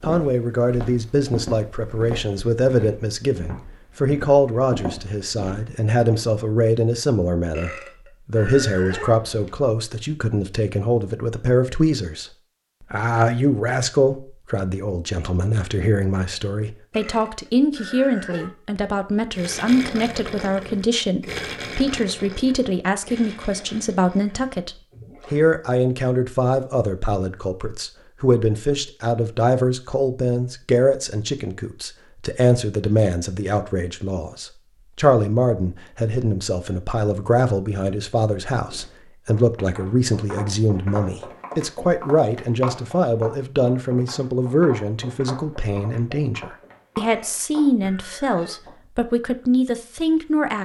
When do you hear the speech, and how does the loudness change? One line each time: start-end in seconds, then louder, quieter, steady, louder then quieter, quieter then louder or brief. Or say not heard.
0.0-50.5 steady.